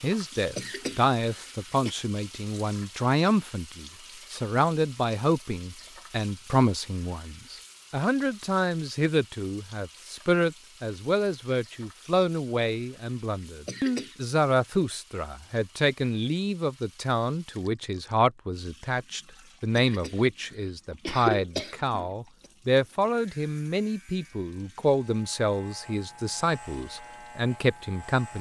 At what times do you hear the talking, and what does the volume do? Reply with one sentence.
You can hear the talking from 0.0 to 28.3 s, at a steady volume.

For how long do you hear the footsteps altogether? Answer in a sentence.
You can't hear the footsteps here.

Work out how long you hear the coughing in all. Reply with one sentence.
The coughing can be heard for 5 seconds in total.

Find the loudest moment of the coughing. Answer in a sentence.
The volume of the coughing peaks at 21 seconds.